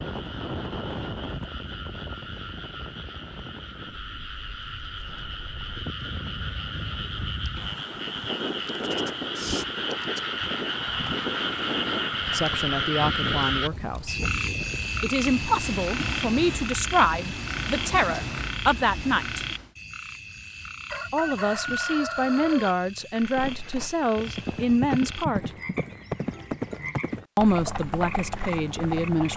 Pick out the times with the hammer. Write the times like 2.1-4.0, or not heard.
not heard.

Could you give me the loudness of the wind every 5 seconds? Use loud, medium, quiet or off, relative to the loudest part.
loud, loud, loud, loud, off, off.